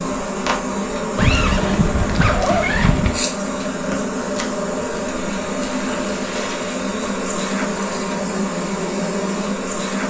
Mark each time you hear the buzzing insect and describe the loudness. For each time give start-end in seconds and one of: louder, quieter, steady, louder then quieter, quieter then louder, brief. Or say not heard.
0.0-10.0 steady.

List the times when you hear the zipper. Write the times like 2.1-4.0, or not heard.
1.1-3.2, 5.8-6.8.